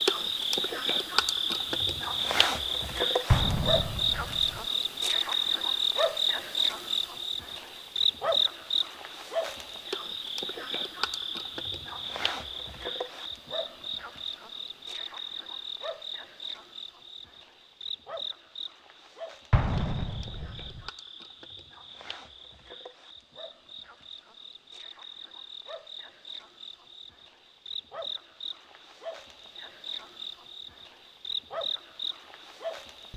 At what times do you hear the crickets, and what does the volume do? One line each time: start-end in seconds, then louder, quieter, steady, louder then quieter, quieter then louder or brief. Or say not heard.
0.0-33.1 quieter then louder.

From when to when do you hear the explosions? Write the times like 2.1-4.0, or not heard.
3.3-4.6, 19.5-20.9.